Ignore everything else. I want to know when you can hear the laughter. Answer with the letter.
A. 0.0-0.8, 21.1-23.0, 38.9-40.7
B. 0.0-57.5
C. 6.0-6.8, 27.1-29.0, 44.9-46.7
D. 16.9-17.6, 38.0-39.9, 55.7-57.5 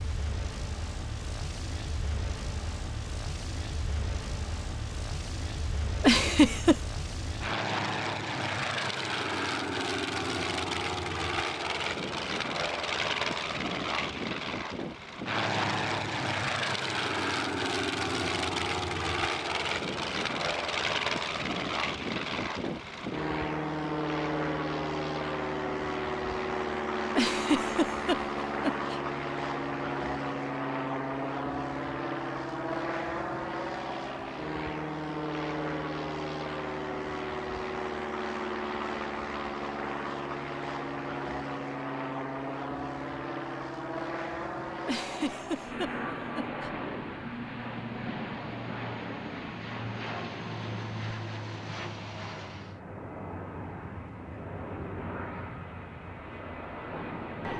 C.